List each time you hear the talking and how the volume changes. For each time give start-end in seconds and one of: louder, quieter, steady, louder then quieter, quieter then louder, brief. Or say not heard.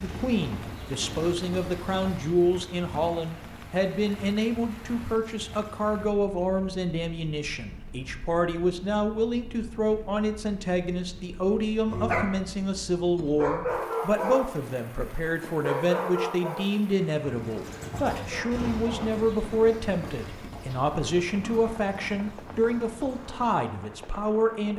0.0-24.7 steady.